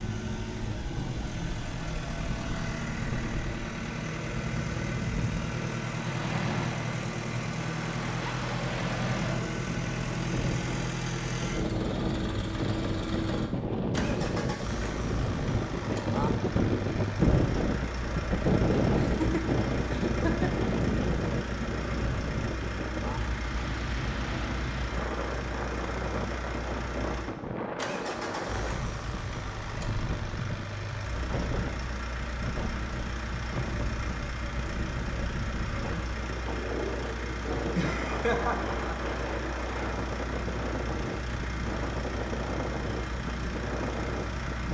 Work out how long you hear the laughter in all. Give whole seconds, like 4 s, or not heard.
3 s.